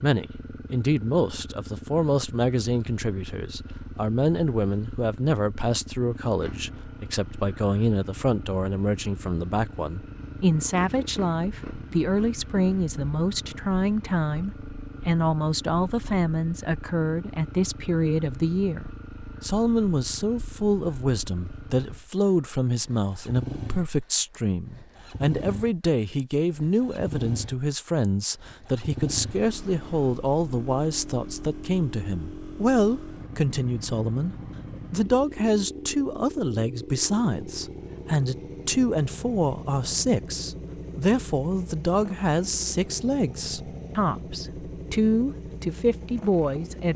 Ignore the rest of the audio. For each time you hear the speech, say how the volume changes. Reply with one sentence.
The speech can be heard from 0.0 to 46.9 s, at a steady volume.